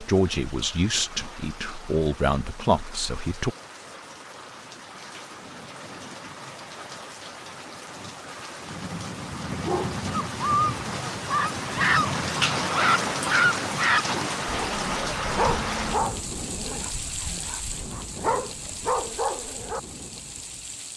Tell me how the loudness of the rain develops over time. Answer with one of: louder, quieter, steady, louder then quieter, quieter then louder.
louder then quieter.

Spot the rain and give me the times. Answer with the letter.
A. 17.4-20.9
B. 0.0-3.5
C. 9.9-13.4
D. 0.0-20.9
D.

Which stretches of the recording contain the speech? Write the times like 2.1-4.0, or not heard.
0.0-3.5.